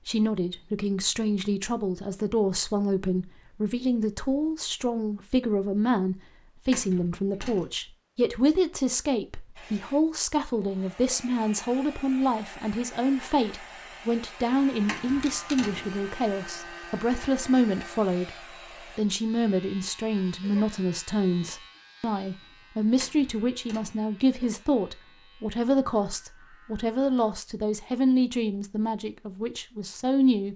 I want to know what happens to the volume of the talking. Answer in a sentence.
The volume of the talking stays about the same.